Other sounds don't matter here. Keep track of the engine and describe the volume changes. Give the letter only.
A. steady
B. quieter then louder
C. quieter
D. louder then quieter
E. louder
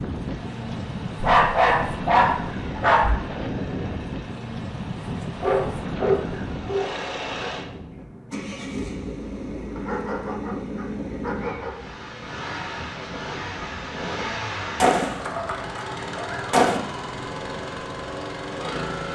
E.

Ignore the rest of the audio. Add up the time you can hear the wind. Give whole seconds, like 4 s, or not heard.
19 s.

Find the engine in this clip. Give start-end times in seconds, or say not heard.
0.0-19.1.